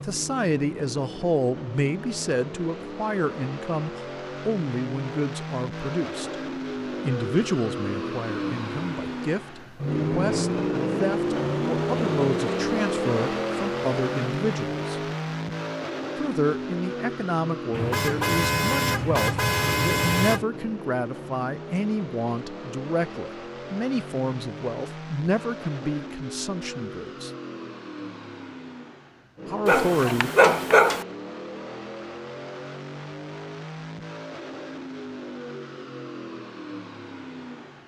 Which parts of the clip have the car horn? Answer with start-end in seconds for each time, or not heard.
17.7-20.4.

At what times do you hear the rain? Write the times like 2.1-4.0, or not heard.
not heard.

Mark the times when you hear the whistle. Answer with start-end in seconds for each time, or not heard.
not heard.